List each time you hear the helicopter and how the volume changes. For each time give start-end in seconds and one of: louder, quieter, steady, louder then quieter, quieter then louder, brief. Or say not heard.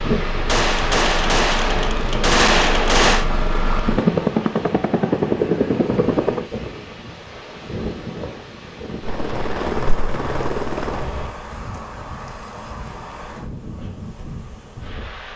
0.0-6.5 louder
9.0-11.3 brief.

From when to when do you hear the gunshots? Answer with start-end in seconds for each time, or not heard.
0.5-3.2.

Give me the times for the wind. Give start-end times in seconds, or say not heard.
0.0-15.3.